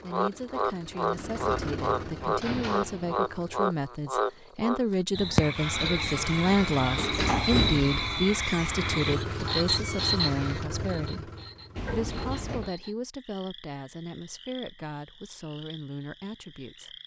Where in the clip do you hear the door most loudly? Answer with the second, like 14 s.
7 s.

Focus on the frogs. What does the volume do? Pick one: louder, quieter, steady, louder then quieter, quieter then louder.
quieter.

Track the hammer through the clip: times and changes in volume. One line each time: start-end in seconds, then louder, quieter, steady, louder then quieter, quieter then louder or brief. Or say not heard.
not heard.